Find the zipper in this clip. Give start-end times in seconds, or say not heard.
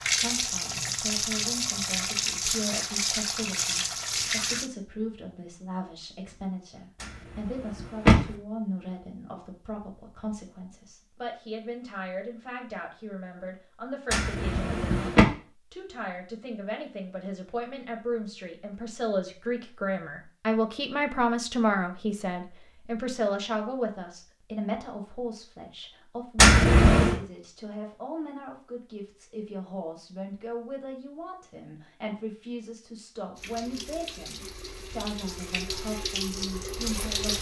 not heard.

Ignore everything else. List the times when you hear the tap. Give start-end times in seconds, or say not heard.
0.0-4.7, 33.4-37.3.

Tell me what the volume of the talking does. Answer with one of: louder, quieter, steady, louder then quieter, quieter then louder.
louder then quieter.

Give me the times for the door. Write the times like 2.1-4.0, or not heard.
7.8-8.3, 14.1-15.2, 26.4-27.1.